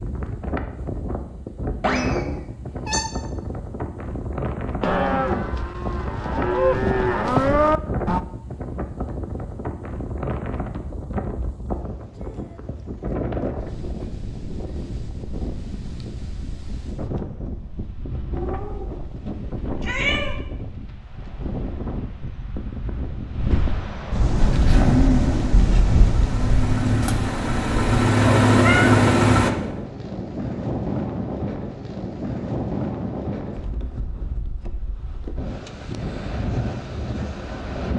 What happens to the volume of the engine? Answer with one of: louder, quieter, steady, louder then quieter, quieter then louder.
quieter then louder.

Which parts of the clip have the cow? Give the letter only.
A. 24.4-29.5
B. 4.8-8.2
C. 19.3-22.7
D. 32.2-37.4
B.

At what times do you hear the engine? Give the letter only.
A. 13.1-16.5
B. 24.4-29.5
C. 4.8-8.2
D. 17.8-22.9
B.